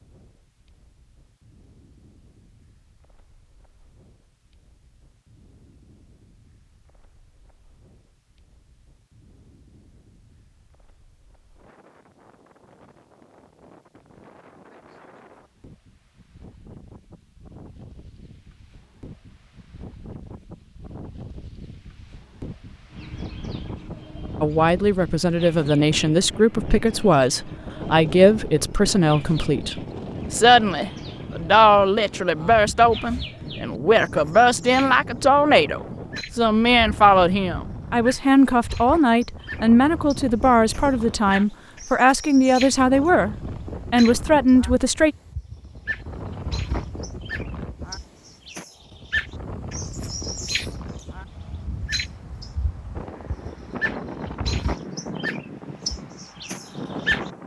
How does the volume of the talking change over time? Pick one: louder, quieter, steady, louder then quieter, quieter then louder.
steady.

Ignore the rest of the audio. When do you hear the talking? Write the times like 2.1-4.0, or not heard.
24.4-45.1.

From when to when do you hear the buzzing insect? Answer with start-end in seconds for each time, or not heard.
not heard.